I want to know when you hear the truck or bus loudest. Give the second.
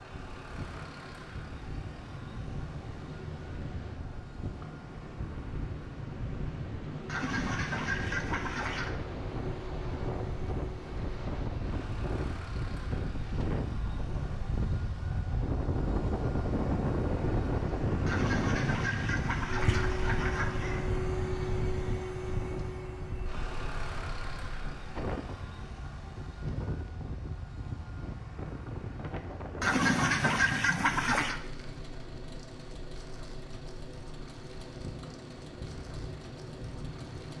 20 s.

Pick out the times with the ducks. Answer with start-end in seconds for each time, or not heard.
7.0-8.9, 18.1-20.9, 29.6-31.4.